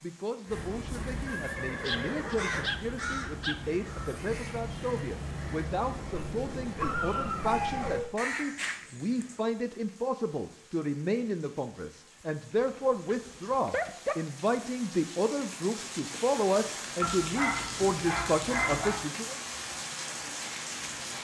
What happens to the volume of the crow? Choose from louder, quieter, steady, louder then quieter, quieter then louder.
steady.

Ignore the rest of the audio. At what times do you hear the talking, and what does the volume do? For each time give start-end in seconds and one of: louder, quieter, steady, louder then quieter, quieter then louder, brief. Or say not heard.
0.0-19.4 louder.